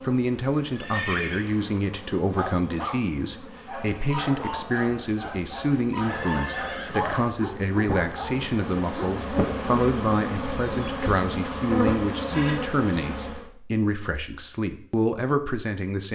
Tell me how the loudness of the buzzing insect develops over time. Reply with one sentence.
The volume of the buzzing insect goes up.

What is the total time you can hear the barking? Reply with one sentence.
The barking can be heard for 7 seconds in total.